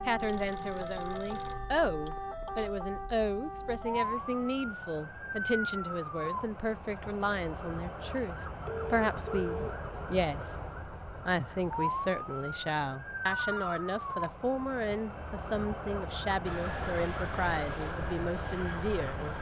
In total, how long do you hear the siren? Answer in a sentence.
The siren can be heard for 19 seconds in total.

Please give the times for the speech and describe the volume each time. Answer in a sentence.
You can hear the speech from 0.1 to 19.3 s, at a steady volume.